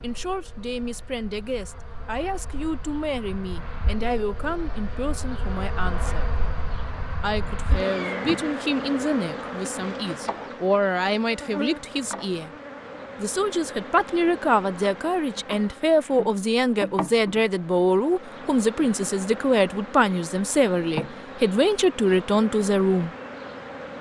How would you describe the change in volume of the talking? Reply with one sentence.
The loudness of the talking goes up.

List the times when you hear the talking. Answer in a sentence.
You can hear the talking from 0.0 to 6.3 s, from 7.2 to 12.5 s and from 13.2 to 23.1 s.